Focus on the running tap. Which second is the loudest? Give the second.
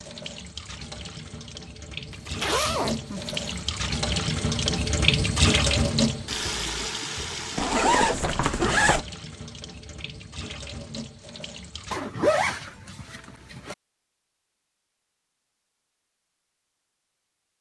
6 s.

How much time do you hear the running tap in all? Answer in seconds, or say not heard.
12 s.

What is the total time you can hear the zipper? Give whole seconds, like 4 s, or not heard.
5 s.